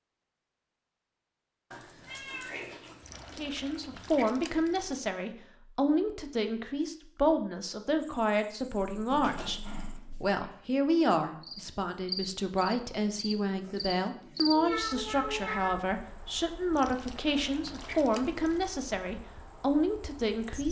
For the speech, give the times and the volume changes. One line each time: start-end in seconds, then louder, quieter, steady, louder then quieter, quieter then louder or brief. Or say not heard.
3.4-20.6 steady.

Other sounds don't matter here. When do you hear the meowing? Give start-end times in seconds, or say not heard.
1.7-3.4, 8.9-10.4, 14.5-15.7.